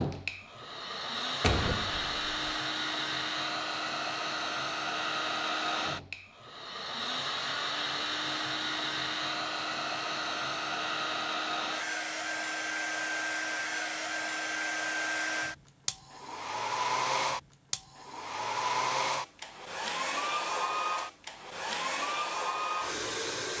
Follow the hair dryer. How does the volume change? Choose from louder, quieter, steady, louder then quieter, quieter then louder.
steady.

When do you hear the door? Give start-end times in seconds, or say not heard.
1.4-2.4.